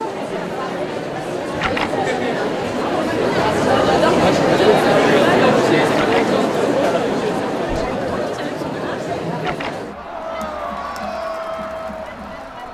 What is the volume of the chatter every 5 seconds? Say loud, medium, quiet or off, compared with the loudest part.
loud, loud, medium.